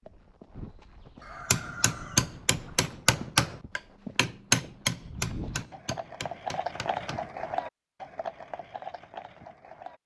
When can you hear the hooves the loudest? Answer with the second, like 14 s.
7 s.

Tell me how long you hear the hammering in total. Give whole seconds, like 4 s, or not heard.
6 s.